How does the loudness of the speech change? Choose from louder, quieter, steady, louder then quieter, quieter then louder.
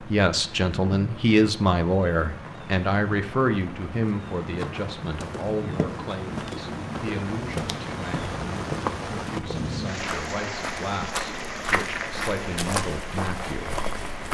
quieter.